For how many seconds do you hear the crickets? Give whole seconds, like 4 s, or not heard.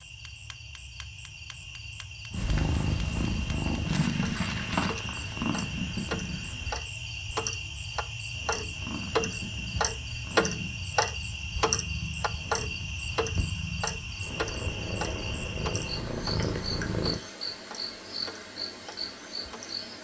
20 s.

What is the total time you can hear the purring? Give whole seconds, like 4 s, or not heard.
13 s.